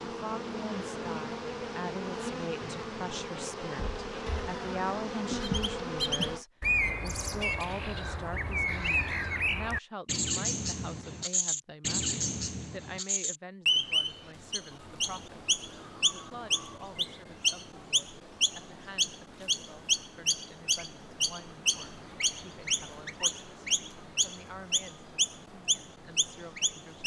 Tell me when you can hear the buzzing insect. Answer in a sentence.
The buzzing insect can be heard from 0.0 to 6.5 s.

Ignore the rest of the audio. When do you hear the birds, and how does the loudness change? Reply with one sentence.
The birds can be heard from 5.4 to 27.0 s, at a steady volume.